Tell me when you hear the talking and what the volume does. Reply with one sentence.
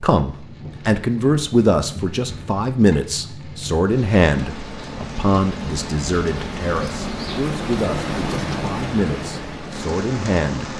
You can hear the talking from 0.0 to 10.7 s, getting quieter.